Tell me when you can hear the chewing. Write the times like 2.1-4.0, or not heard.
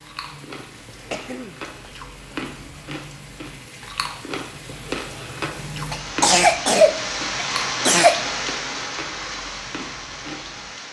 0.0-10.7.